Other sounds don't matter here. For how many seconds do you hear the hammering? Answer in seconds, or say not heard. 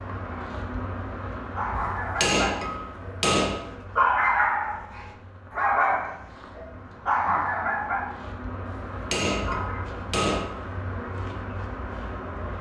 4 s.